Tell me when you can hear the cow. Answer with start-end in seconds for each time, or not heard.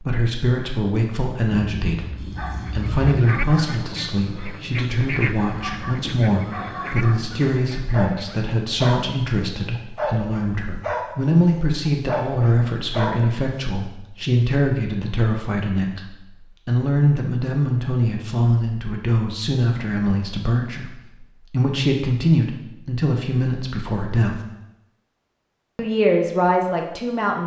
1.5-3.0.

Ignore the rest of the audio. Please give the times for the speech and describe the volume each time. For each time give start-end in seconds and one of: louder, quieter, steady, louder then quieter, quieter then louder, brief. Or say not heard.
0.0-24.4 steady
25.8-27.4 brief.